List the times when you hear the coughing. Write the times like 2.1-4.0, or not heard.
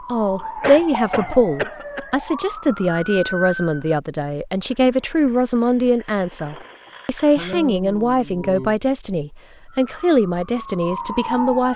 0.4-2.0, 6.8-8.8.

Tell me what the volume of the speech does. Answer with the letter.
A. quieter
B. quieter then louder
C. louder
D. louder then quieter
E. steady
E.